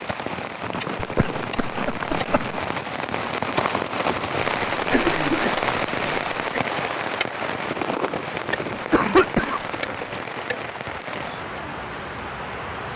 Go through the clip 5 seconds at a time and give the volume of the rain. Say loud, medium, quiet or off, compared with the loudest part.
loud, loud, medium.